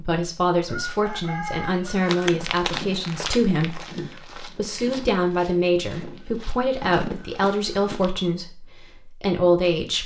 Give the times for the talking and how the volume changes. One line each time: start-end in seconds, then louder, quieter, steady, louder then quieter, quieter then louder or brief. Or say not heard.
0.0-10.0 steady.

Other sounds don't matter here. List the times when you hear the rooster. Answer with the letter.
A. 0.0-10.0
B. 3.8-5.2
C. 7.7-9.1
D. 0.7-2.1
D.